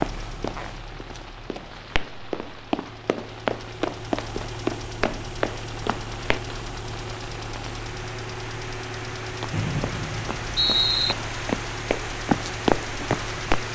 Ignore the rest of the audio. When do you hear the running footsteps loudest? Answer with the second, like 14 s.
13 s.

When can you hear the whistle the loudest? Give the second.
11 s.